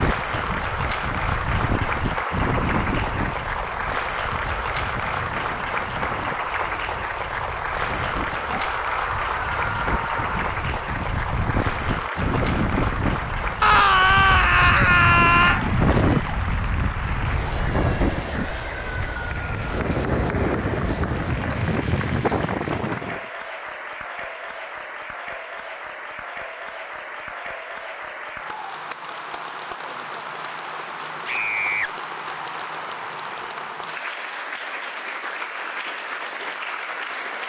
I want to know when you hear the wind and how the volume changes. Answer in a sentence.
You can hear the wind from 0.0 to 23.2 s, getting quieter then louder.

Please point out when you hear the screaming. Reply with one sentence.
You can hear the screaming from 8.6 to 10.4 s, from 13.6 to 15.6 s and from 31.2 to 31.9 s.